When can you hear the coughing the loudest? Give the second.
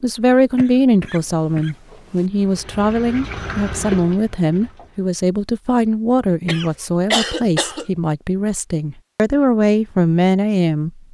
7 s.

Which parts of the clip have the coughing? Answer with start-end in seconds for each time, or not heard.
0.6-2.2, 6.5-7.8.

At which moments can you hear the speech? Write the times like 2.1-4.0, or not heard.
0.0-11.0.